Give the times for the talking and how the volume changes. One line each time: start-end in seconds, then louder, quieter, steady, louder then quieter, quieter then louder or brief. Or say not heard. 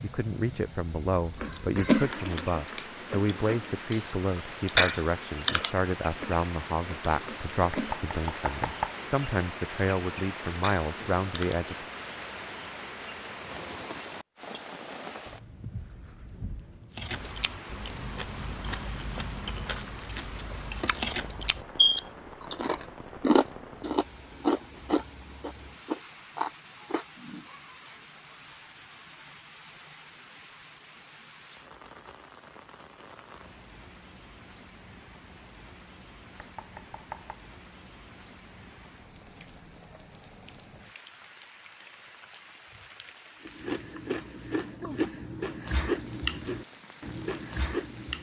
0.0-11.9 steady.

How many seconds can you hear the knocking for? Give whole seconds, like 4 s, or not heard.
2 s.